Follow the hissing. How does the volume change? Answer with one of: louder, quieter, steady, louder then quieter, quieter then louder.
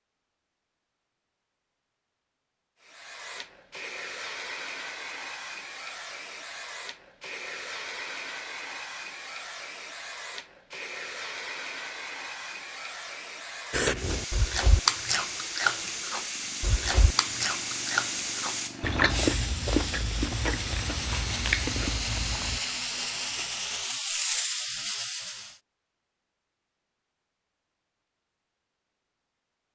louder.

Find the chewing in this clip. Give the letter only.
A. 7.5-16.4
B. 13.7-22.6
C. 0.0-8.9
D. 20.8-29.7
B.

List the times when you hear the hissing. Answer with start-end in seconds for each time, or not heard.
2.8-25.6.